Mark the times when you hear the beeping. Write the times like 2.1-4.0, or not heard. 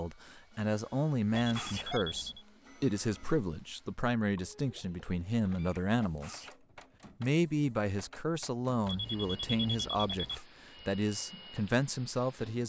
1.4-2.5, 8.8-10.4.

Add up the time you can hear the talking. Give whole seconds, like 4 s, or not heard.
12 s.